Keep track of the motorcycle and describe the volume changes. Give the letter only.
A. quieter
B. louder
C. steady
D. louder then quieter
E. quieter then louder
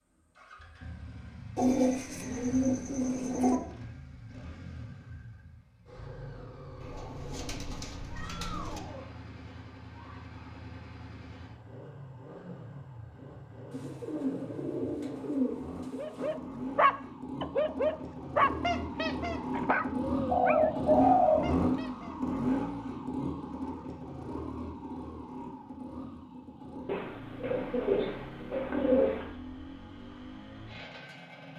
D.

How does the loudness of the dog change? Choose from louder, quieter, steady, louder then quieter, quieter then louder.
quieter.